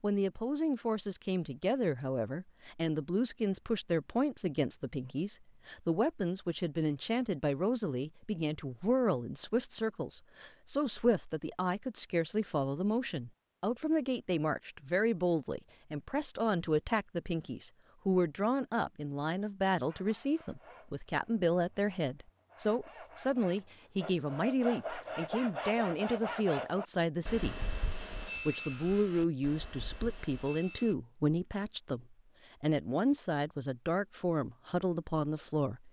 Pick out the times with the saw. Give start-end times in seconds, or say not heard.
19.9-30.9.